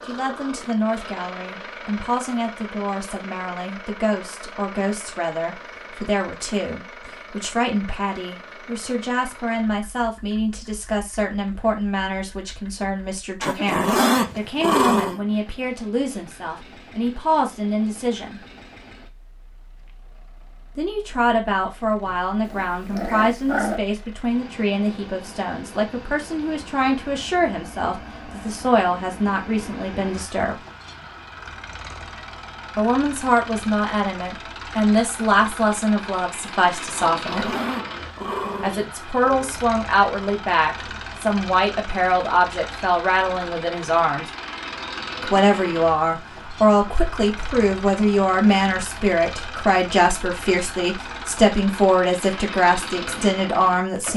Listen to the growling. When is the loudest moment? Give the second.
14 s.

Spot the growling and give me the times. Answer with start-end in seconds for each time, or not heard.
13.4-15.2, 22.4-23.8, 37.1-39.5.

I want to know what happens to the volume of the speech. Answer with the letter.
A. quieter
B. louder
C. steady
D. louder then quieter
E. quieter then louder
B.